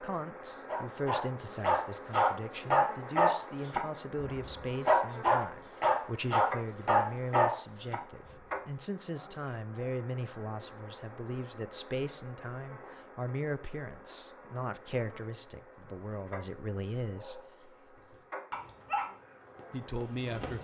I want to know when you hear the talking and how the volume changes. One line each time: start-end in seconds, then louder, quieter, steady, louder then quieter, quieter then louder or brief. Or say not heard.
0.0-17.4 steady
19.7-20.5 brief.